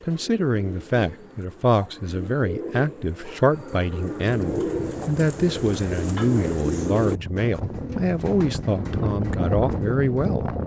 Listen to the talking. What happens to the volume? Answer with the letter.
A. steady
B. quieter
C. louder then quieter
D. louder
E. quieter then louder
A.